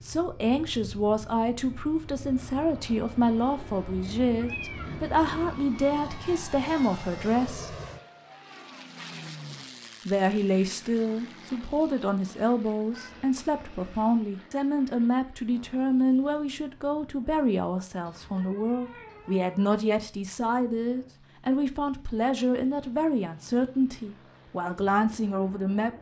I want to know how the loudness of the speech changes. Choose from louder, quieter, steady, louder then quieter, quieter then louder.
steady.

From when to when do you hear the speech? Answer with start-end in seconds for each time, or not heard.
0.0-7.8, 10.1-25.9.